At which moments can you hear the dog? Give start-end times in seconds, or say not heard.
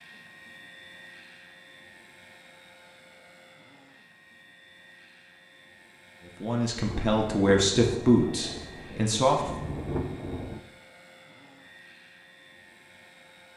not heard.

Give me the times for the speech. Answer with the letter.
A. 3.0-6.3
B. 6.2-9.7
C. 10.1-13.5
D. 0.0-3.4
B.